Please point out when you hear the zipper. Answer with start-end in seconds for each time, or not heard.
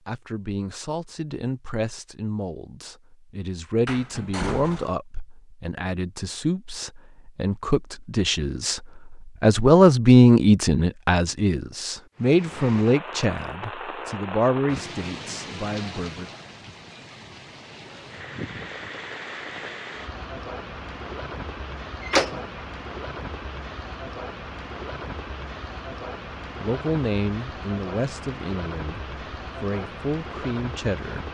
not heard.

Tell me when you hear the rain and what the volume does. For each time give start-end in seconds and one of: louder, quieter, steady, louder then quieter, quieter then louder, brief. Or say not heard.
12.2-31.2 steady.